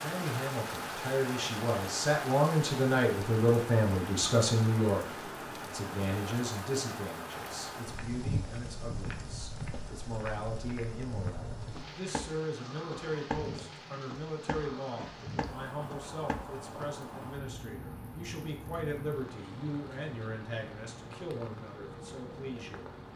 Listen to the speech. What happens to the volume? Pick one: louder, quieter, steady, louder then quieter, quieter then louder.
quieter.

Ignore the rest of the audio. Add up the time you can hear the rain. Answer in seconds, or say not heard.
23 s.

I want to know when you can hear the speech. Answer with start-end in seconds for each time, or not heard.
0.0-5.0, 5.7-22.9.